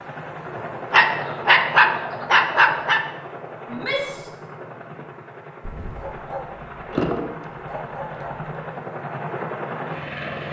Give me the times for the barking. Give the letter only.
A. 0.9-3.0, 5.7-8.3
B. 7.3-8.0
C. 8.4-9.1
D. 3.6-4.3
A.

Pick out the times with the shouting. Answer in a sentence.
You can hear the shouting from 3.6 to 4.3 s.